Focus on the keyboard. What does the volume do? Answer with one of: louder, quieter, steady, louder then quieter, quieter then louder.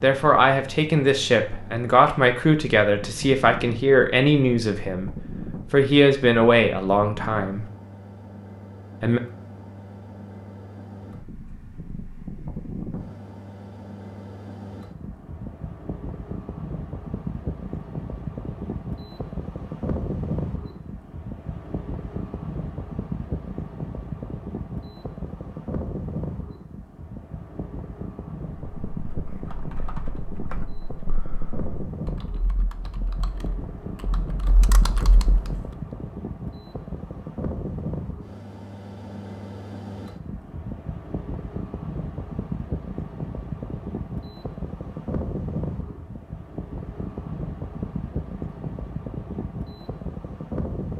quieter then louder.